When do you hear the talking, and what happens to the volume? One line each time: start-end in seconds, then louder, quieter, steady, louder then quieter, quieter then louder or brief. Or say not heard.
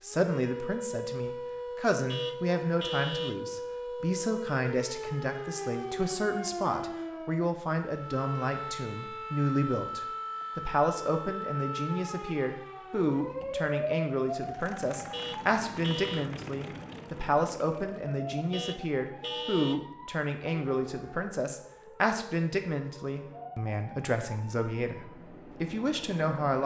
0.0-26.6 steady.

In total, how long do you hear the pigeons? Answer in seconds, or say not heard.
not heard.